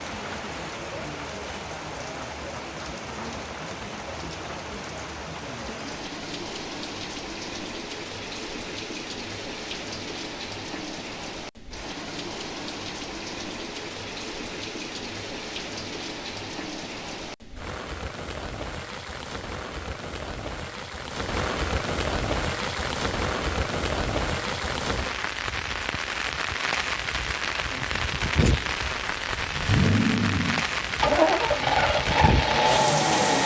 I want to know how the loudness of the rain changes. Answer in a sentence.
The loudness of the rain goes up.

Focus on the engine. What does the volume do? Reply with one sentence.
The loudness of the engine goes up.